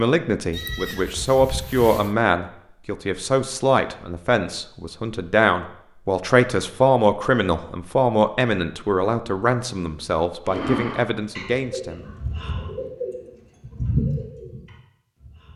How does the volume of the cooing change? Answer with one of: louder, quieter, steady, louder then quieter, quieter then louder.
louder then quieter.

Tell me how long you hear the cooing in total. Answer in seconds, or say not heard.
5 s.